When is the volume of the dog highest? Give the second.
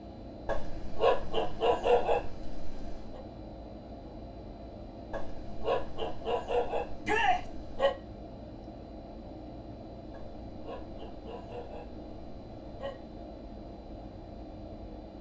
2 s.